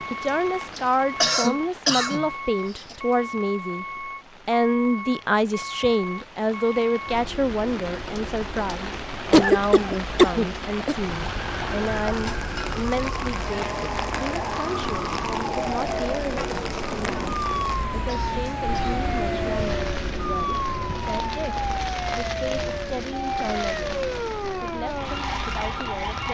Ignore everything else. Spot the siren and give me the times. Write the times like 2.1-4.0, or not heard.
11.1-26.2.